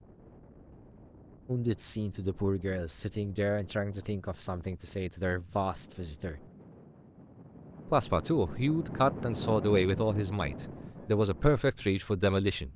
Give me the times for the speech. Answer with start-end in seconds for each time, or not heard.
1.4-6.4, 7.8-12.7.